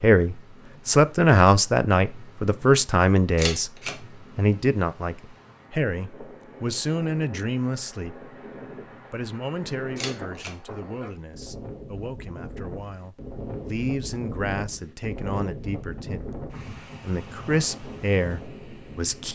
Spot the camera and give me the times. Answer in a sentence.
You can hear the camera from 3.4 to 4.0 s and from 9.9 to 10.5 s.